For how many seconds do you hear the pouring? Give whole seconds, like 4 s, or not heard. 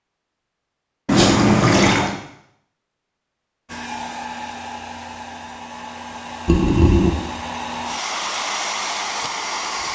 2 s.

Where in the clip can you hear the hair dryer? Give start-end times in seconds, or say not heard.
3.6-9.9.